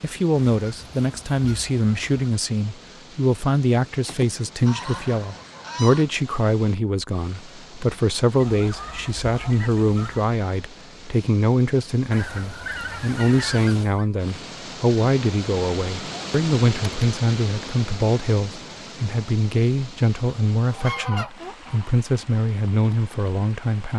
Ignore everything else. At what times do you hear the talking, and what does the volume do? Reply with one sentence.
You can hear the talking from 0.0 to 23.9 s, at a steady volume.